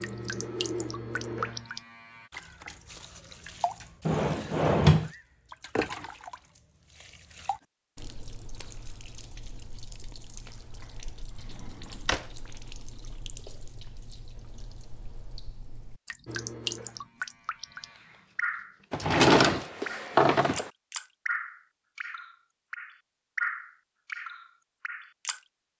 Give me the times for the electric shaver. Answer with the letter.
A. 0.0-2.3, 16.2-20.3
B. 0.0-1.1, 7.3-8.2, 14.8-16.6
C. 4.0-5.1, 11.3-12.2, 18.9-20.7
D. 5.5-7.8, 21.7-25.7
A.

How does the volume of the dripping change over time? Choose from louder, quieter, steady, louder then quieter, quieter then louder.
quieter then louder.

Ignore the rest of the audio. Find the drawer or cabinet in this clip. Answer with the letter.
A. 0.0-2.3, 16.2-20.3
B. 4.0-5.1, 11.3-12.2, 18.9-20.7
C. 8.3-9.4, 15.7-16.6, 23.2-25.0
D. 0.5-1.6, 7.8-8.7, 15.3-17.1
B.